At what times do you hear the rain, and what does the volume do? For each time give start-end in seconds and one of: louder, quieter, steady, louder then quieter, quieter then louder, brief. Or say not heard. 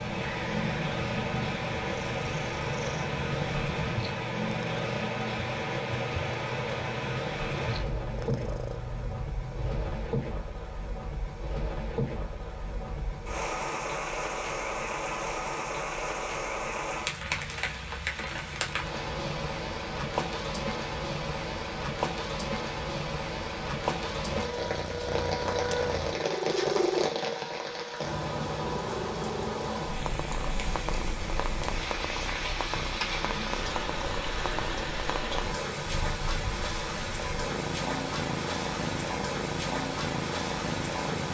0.0-41.2 steady.